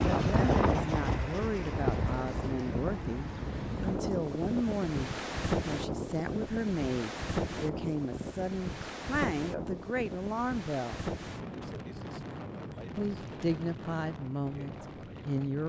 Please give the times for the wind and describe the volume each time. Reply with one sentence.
You can hear the wind from 0.0 to 15.6 s, getting quieter.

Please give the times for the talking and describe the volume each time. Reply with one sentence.
You can hear the talking from 0.1 to 11.1 s, at a steady volume; and briefly from 12.9 to 15.6 s.